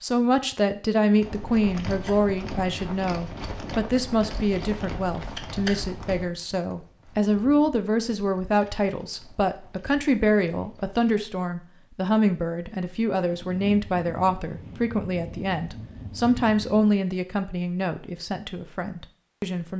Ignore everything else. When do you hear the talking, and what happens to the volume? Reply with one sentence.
The talking can be heard from 0.0 to 19.7 s, at a steady volume.